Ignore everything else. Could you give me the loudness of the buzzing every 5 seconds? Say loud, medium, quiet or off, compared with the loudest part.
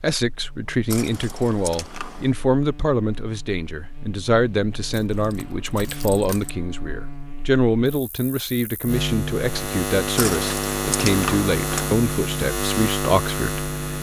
quiet, medium, loud.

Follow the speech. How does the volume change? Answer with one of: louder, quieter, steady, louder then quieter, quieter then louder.
steady.